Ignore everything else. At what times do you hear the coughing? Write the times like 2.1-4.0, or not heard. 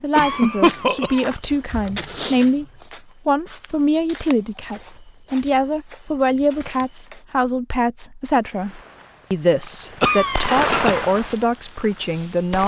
0.1-1.3, 10.0-11.0.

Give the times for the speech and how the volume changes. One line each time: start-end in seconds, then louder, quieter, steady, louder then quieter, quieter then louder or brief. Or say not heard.
0.0-2.6 brief
3.2-12.6 steady.